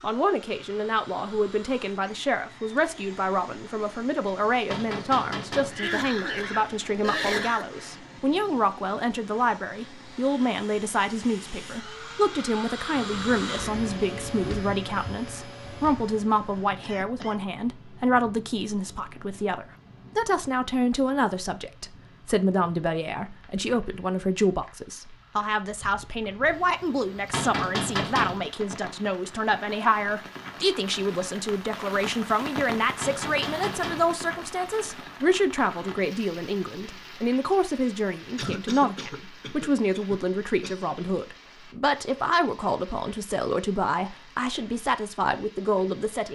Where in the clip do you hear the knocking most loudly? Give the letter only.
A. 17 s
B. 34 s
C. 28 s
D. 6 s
C.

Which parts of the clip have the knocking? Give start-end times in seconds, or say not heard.
4.7-5.8, 27.3-28.4, 33.0-34.1.